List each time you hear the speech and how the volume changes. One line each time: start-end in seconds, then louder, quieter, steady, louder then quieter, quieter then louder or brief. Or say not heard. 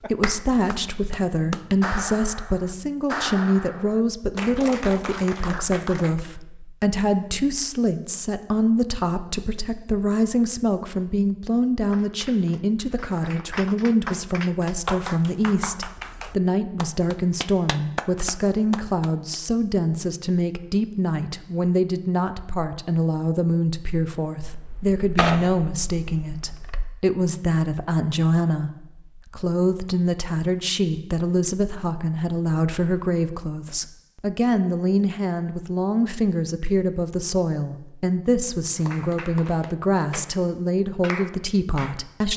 0.0-42.3 steady.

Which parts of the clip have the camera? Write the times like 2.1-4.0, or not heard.
24.4-26.9.